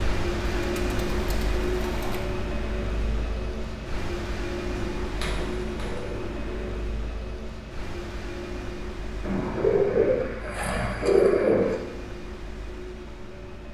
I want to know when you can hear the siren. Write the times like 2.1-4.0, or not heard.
not heard.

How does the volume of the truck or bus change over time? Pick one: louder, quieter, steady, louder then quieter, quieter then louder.
quieter.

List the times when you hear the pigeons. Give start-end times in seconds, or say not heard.
0.6-2.2, 4.9-6.8, 9.2-11.8.